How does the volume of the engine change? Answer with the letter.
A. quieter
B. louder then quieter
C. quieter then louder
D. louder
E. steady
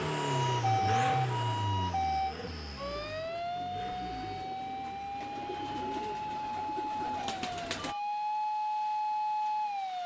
A.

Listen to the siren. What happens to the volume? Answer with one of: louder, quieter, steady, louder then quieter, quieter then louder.
quieter then louder.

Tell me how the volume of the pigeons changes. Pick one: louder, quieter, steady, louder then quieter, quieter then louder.
louder.